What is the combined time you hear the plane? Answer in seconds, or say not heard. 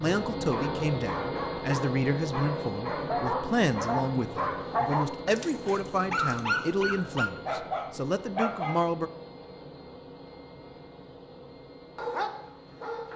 13 s.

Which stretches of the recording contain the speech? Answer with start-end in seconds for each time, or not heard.
0.0-9.1.